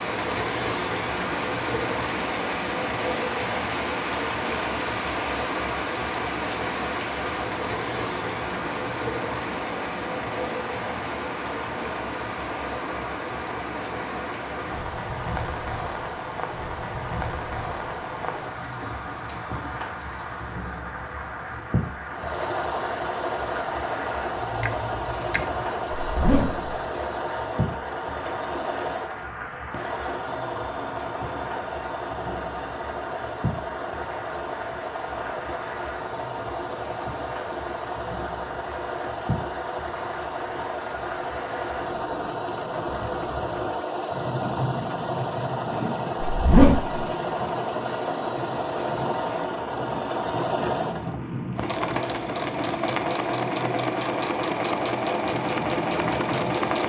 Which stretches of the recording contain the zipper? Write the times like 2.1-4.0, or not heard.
25.9-26.6, 46.2-47.0.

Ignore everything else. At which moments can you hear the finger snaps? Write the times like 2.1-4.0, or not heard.
24.4-25.7.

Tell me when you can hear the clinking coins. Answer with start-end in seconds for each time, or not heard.
not heard.